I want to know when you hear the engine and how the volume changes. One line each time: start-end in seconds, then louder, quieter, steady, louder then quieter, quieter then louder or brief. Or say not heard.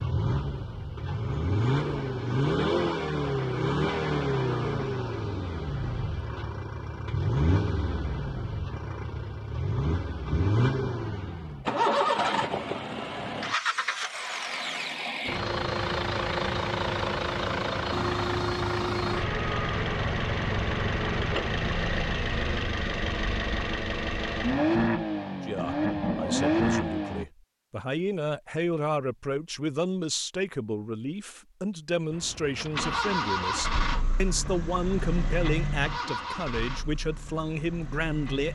0.0-27.2 steady
32.1-38.5 quieter.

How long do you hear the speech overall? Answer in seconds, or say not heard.
13 s.